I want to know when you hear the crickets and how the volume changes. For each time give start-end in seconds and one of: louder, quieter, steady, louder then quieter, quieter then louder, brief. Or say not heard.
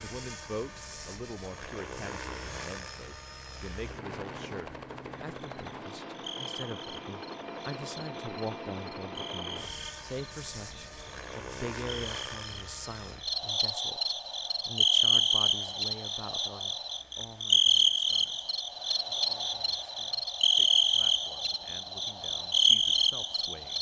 5.3-23.7 louder.